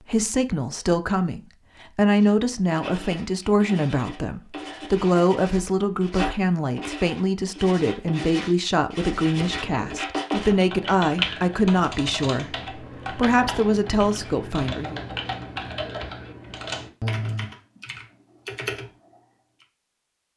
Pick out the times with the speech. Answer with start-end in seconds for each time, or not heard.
0.0-15.0.